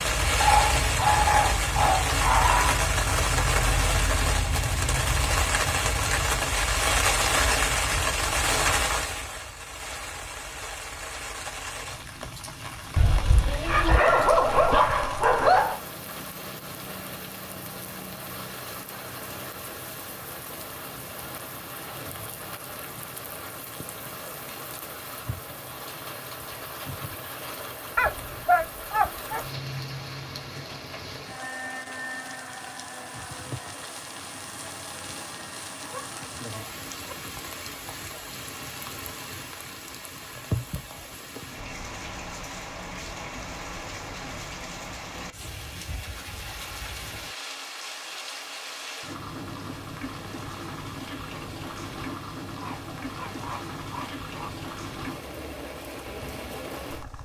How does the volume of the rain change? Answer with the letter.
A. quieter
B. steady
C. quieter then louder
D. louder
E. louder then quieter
A.